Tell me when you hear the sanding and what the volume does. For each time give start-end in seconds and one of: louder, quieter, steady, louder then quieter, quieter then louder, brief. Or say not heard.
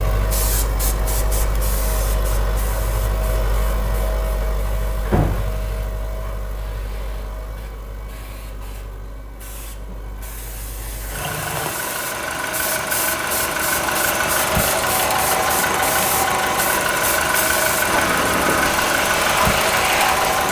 not heard.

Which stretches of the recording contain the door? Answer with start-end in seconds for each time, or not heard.
5.0-6.0.